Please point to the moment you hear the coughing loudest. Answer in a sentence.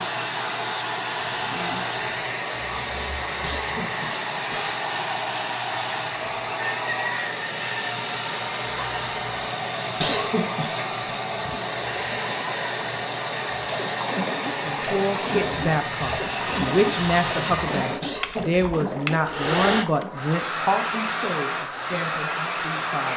The loudest moment of the coughing is at 10 seconds.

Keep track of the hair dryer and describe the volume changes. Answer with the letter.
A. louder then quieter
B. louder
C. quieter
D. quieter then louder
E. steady
E.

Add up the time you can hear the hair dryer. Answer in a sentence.
The hair dryer can be heard for 23 seconds in total.